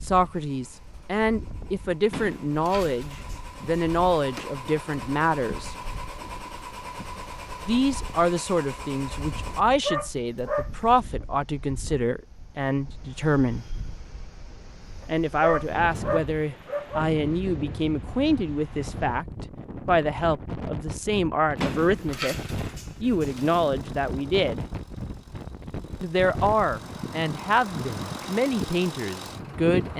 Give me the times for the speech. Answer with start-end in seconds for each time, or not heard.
0.0-5.8, 7.7-13.7, 15.1-22.4, 23.0-24.6, 26.0-29.9.